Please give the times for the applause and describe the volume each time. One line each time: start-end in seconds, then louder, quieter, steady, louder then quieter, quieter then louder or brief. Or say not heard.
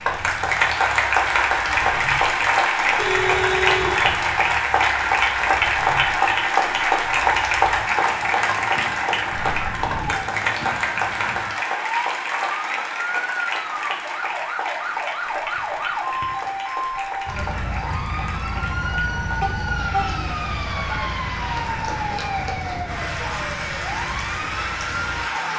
0.0-25.5 quieter.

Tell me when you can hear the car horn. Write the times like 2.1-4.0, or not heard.
3.0-4.2, 9.3-10.2, 19.4-20.1.